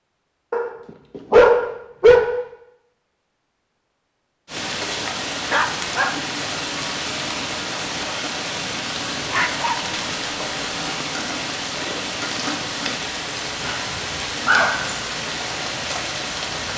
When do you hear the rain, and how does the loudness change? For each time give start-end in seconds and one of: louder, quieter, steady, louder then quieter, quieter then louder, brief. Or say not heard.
4.5-16.7 steady.